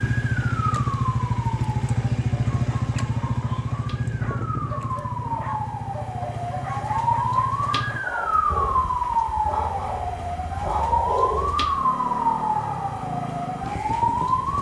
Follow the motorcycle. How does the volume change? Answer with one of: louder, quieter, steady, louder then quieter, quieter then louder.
quieter then louder.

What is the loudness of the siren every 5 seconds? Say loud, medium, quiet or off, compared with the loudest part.
medium, loud, loud.